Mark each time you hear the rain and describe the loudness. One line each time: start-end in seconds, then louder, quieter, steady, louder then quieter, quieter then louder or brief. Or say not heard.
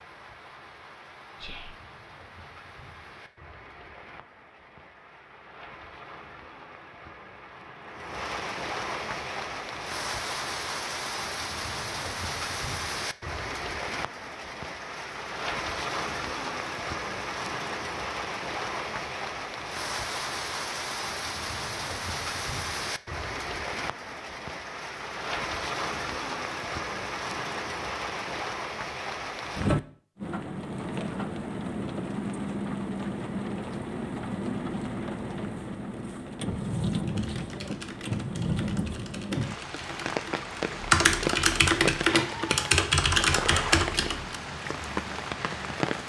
0.0-46.0 louder.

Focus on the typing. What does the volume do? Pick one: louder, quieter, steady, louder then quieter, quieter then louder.
louder.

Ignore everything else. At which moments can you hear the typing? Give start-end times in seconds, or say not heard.
36.9-44.4.